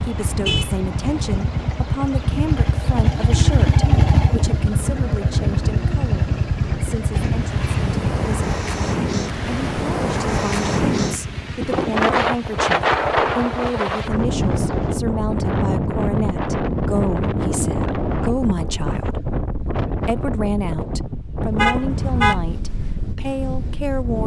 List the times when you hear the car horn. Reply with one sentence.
You can hear the car horn from 0.1 to 0.8 s and from 21.6 to 22.4 s.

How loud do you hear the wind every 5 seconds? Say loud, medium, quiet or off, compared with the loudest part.
medium, medium, loud, loud, medium.